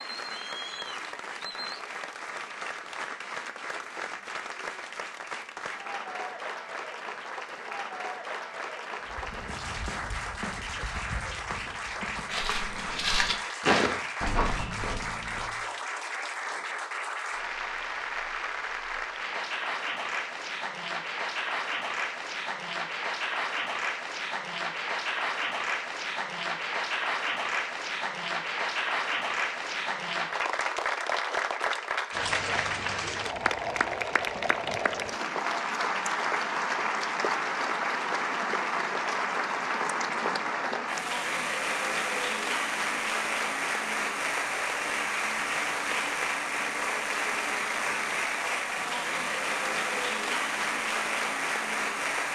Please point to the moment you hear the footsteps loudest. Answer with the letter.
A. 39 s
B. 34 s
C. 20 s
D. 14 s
D.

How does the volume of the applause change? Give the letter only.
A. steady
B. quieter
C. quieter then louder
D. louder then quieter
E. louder
E.